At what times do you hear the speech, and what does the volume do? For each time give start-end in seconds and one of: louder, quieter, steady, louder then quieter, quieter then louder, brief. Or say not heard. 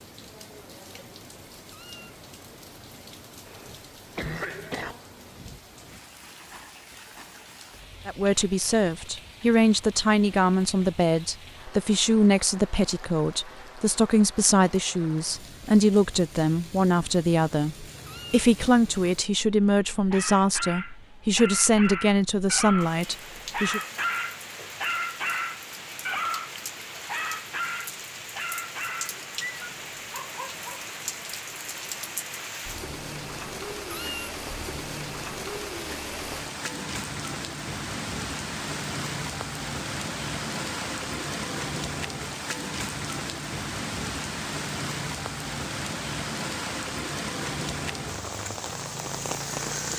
8.1-23.8 steady.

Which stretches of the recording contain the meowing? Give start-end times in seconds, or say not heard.
1.6-2.1, 18.0-18.4, 33.9-34.3.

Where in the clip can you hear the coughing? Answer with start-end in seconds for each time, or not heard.
3.5-5.0.